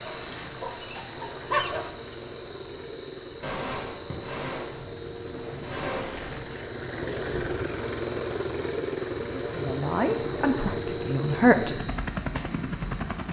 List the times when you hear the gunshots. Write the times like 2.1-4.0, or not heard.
3.4-6.4.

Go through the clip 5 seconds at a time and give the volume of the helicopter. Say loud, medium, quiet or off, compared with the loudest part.
medium, loud, loud.